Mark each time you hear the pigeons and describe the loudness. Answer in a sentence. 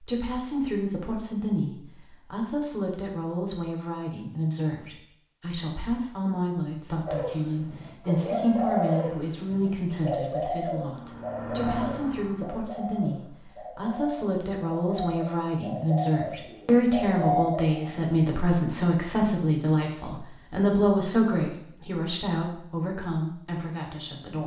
You can hear the pigeons from 7.0 to 18.0 s, getting quieter then louder.